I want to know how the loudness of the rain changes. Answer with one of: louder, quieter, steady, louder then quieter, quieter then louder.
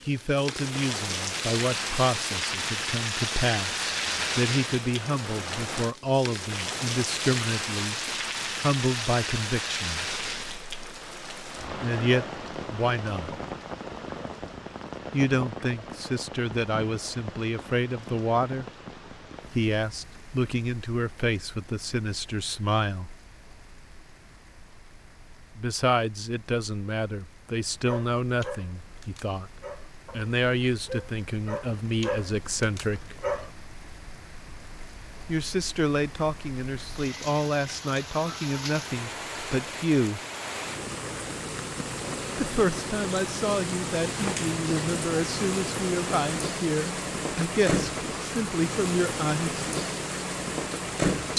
quieter then louder.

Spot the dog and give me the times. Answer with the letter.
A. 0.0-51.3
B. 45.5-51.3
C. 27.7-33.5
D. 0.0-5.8
C.